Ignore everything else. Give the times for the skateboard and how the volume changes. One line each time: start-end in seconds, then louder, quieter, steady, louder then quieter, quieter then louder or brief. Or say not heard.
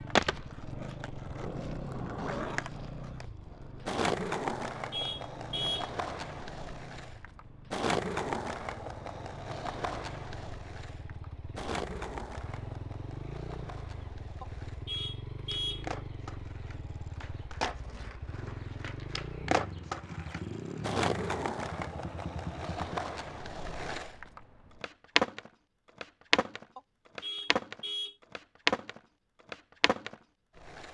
0.1-30.8 quieter then louder.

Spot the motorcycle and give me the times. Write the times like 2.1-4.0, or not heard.
0.0-23.0.